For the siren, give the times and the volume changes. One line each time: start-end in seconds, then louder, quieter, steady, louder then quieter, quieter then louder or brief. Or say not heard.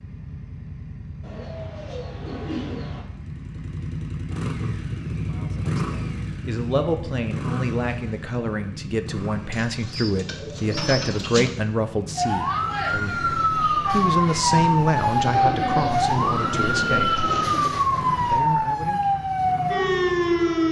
12.2-20.6 steady.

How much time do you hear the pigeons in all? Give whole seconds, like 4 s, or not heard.
7 s.